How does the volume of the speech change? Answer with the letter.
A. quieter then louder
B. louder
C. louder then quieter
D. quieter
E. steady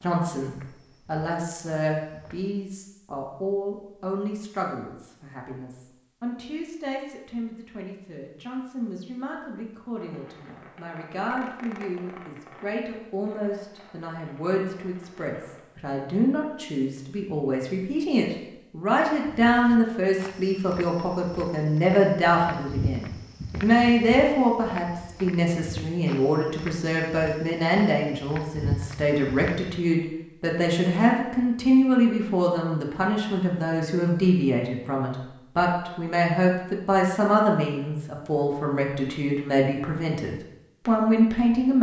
B.